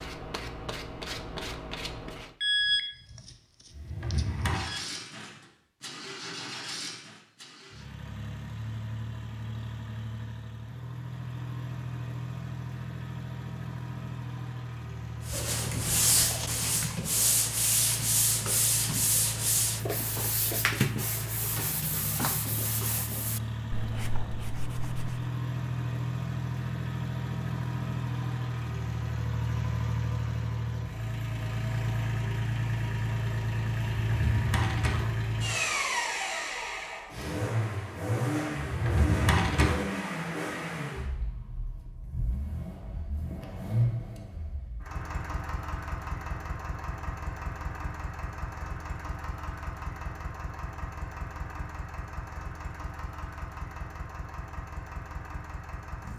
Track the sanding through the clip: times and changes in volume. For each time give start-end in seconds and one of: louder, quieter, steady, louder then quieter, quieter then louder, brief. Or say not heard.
0.0-2.4 brief
15.2-25.3 quieter.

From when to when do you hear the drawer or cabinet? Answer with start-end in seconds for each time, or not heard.
3.7-4.7, 33.9-35.1, 38.6-39.8.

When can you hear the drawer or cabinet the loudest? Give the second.
39 s.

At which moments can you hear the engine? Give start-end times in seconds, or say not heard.
4.5-56.1.